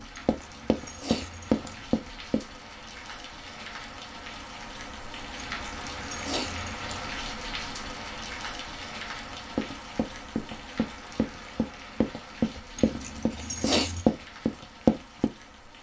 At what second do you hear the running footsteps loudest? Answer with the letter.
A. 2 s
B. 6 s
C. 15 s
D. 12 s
C.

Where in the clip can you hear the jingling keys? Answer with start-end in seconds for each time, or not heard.
0.1-1.9, 5.5-7.1, 12.8-14.1.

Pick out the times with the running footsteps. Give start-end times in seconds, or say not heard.
0.0-2.5, 9.3-15.3.